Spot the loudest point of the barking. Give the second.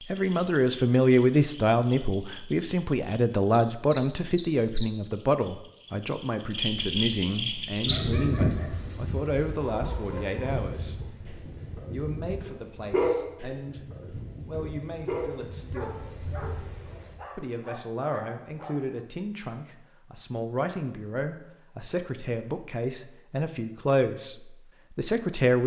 13 s.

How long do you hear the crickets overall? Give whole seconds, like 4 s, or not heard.
17 s.